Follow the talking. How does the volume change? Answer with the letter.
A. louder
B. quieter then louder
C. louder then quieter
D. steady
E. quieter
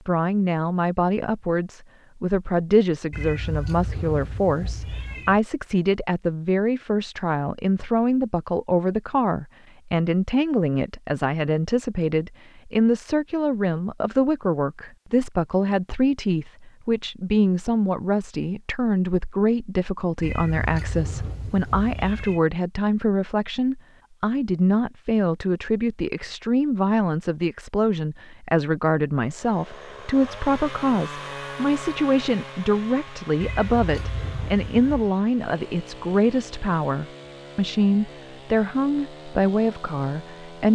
D.